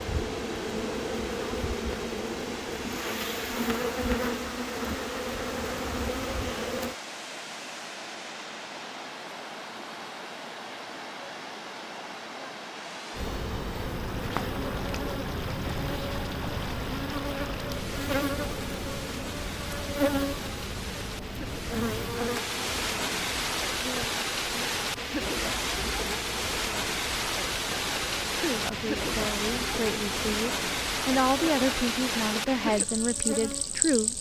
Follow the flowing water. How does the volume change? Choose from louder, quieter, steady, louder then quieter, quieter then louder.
louder.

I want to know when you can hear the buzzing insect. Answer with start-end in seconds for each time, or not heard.
0.0-7.0, 13.2-34.1.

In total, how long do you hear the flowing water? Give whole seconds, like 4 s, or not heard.
34 s.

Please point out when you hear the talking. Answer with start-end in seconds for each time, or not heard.
28.4-34.1.